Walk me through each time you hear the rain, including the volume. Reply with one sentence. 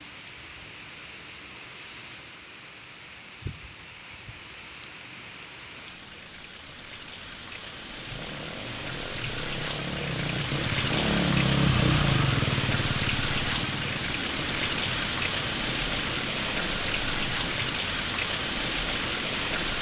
The rain can be heard from 0.0 to 19.7 s, getting louder.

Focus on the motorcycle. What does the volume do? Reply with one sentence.
The volume of the motorcycle goes up, then down.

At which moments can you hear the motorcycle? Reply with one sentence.
The motorcycle can be heard from 8.1 to 17.8 s.